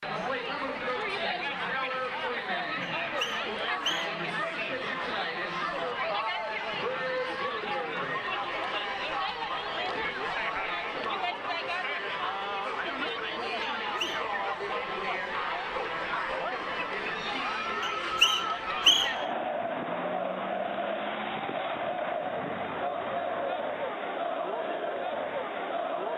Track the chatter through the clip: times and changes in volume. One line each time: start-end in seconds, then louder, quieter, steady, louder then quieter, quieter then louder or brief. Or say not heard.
0.0-26.1 steady.